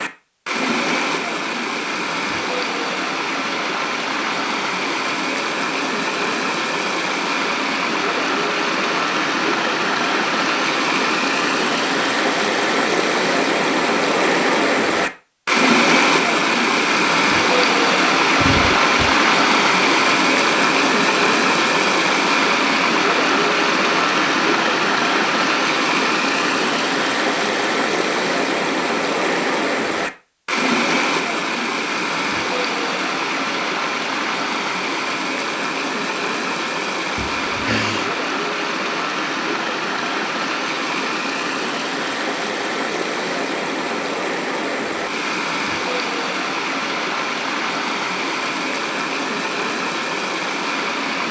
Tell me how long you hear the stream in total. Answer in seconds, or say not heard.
51 s.